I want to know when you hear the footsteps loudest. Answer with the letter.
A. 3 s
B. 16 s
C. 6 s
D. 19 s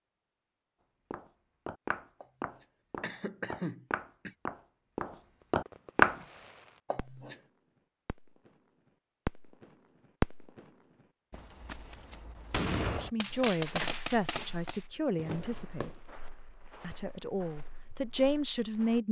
C.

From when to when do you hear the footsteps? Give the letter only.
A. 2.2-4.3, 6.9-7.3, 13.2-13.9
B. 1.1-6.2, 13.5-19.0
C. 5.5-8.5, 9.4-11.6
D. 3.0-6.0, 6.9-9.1
B.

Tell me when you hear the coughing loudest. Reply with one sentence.
The loudest moment of the coughing is at 4 seconds.